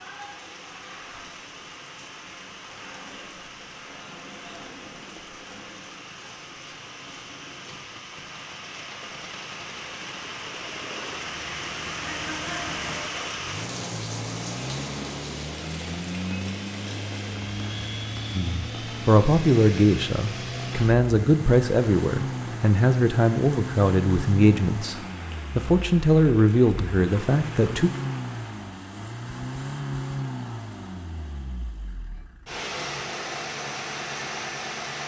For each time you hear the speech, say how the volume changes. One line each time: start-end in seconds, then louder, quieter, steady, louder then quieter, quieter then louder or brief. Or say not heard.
18.4-27.9 steady.